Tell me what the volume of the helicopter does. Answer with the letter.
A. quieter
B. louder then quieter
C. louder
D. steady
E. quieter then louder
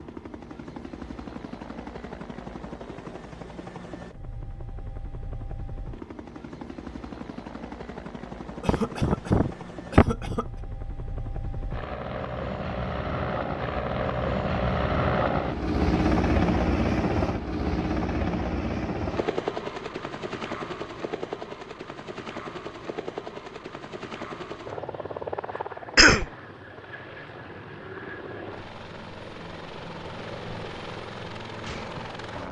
B.